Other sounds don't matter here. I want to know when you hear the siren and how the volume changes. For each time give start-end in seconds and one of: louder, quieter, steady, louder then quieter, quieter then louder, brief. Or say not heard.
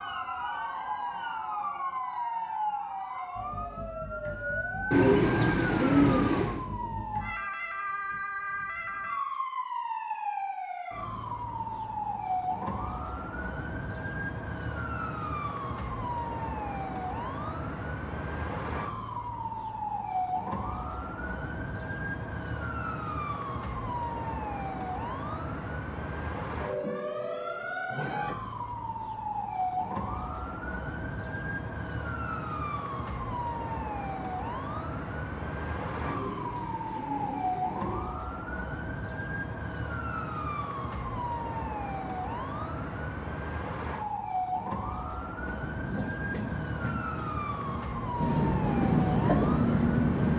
0.0-50.3 steady.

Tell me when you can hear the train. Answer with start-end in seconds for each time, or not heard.
45.3-50.3.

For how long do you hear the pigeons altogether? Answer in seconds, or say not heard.
4 s.